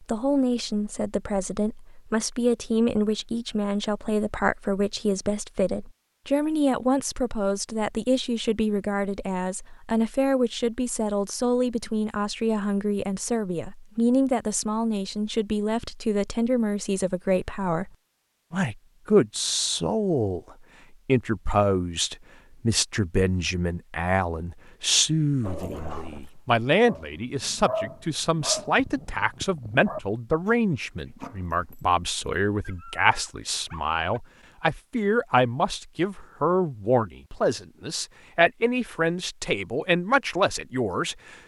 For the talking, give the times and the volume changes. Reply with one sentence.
You can hear the talking from 0.0 to 17.9 s, at a steady volume; and from 18.5 to 41.4 s, at a steady volume.